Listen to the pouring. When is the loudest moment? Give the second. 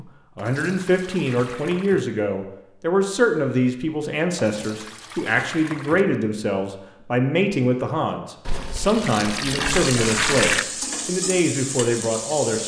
10 s.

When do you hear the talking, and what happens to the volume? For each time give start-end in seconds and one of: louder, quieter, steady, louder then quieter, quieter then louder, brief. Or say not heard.
0.0-12.6 steady.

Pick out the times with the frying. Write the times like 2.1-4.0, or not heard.
9.8-12.6.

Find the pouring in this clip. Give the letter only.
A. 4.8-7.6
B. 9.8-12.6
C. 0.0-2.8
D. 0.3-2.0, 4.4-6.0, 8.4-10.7
D.